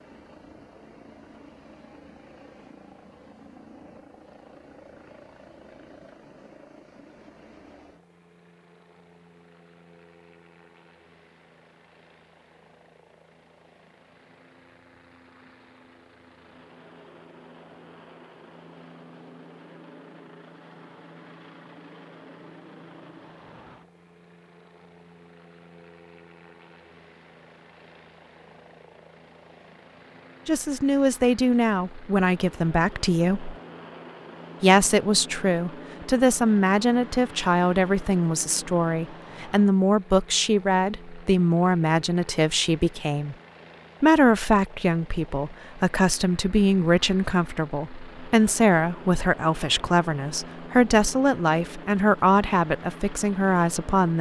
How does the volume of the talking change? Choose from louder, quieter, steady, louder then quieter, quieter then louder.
steady.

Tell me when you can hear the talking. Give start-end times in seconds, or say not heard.
30.4-33.5, 34.6-43.4, 44.0-54.1.